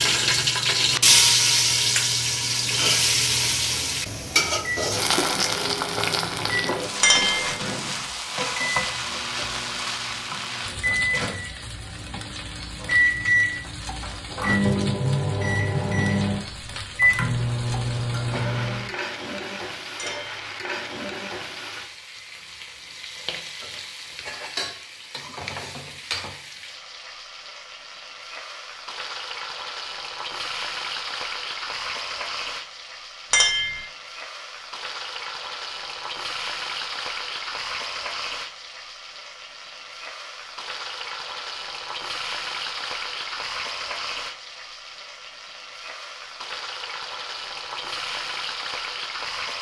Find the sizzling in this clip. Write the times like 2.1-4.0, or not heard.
0.0-49.5.